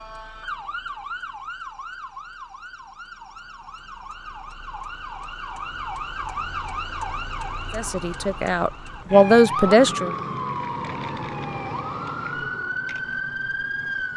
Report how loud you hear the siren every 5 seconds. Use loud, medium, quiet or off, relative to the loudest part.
medium, loud, loud.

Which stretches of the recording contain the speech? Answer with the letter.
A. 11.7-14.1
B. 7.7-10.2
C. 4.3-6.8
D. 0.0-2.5
B.